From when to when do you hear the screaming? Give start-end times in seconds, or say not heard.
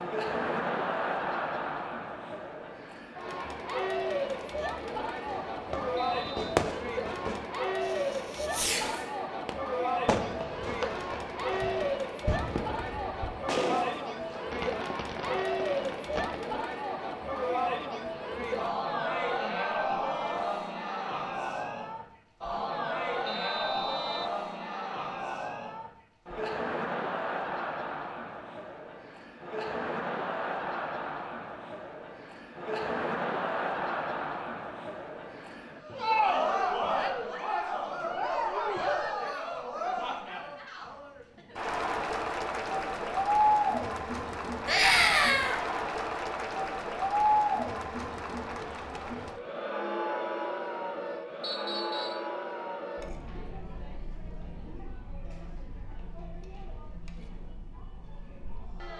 44.6-45.6.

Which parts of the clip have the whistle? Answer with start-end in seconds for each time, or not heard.
6.0-6.6, 23.2-24.4, 51.4-52.2.